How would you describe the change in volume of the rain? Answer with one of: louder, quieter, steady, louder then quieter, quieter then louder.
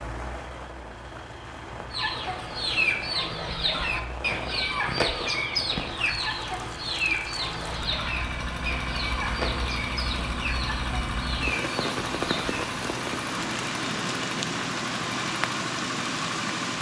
louder.